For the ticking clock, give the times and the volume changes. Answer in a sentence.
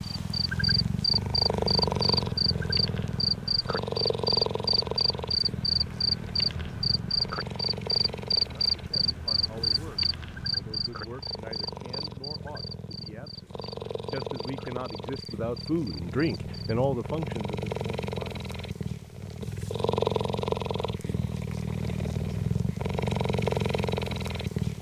You can't hear the ticking clock here.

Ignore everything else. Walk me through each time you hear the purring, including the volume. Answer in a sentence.
The purring can be heard from 0.0 to 24.7 s, getting quieter then louder.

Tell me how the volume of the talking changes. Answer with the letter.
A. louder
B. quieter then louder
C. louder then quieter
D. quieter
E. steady
A.